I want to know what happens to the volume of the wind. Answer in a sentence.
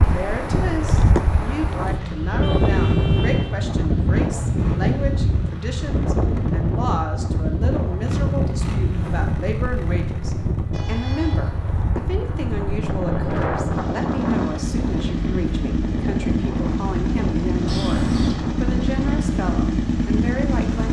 The volume of the wind goes down.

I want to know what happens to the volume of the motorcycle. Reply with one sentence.
The loudness of the motorcycle goes up.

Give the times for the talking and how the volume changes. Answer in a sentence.
The talking can be heard from 0.0 to 20.8 s, at a steady volume.